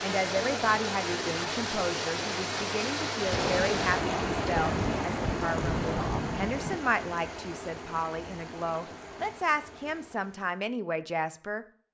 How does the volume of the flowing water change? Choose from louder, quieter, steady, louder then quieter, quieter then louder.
quieter.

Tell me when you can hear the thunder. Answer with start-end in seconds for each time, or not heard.
3.2-6.8.